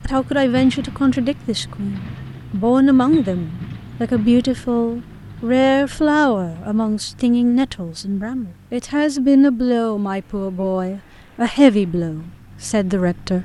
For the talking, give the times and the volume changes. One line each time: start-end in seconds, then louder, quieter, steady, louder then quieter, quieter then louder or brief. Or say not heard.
0.1-13.4 steady.